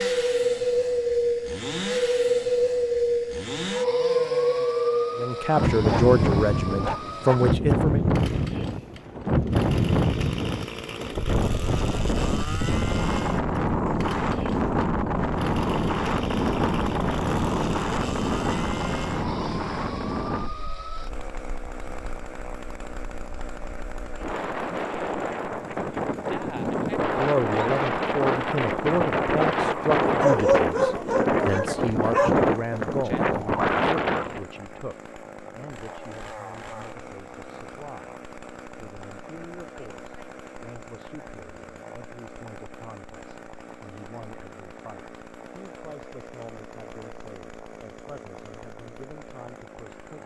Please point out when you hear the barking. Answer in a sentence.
You can hear the barking from 5.8 to 7.5 s and from 30.1 to 32.5 s.